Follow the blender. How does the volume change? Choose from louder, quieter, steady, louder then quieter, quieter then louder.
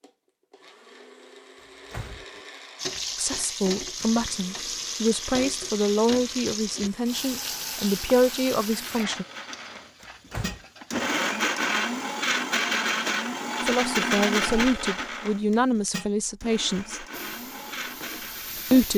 louder then quieter.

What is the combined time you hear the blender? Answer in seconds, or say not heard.
19 s.